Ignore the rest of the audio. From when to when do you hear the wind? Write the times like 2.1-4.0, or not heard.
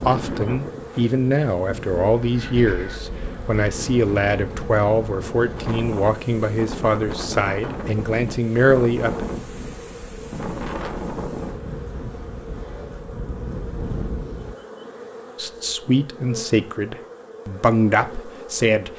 0.0-14.6.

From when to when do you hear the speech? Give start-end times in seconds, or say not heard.
0.0-9.2, 15.3-18.9.